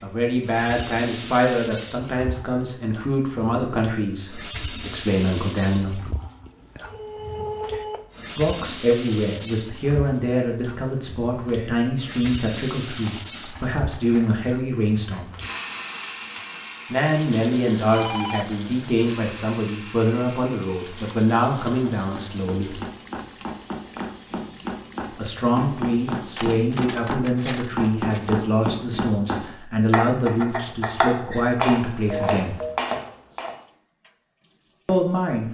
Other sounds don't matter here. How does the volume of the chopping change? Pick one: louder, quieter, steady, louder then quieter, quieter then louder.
louder.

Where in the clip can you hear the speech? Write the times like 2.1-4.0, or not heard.
0.0-6.0, 8.3-15.3, 16.9-22.8, 25.1-32.5, 34.9-35.4.